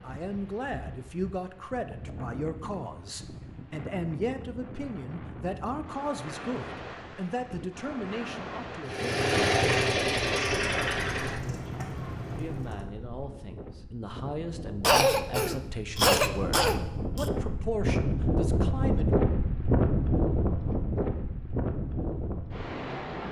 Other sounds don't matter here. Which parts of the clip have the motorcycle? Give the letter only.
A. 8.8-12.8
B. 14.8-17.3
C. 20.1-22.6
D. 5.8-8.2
A.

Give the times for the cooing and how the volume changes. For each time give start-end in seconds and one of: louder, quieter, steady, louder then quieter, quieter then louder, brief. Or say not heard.
not heard.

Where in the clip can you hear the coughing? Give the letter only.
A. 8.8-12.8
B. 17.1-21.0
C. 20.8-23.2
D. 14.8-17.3
D.